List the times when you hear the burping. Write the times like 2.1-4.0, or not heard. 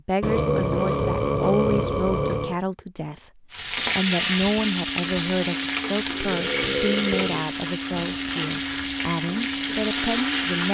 0.2-2.6, 6.0-7.5.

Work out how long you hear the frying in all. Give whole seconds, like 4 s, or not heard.
7 s.